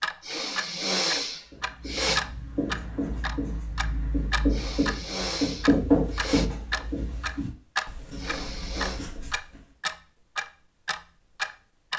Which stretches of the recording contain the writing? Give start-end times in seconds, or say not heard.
1.5-9.7.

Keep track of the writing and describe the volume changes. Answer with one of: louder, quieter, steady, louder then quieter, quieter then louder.
louder then quieter.